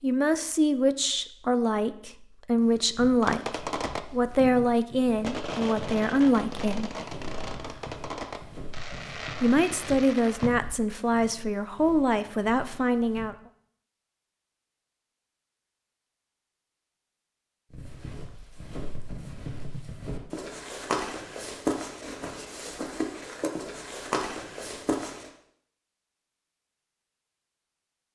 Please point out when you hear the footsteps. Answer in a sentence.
You can hear the footsteps from 2.5 to 13.3 s and from 17.7 to 25.3 s.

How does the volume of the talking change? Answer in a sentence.
The loudness of the talking stays about the same.